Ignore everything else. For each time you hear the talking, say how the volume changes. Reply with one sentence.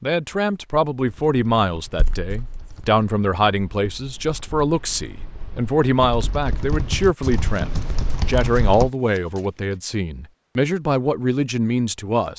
You can hear the talking from 0.0 to 12.3 s, at a steady volume.